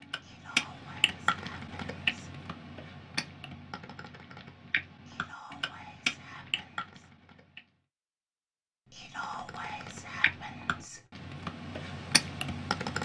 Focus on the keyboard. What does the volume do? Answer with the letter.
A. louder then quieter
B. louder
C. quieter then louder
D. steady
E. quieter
C.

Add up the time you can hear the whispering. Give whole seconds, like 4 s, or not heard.
6 s.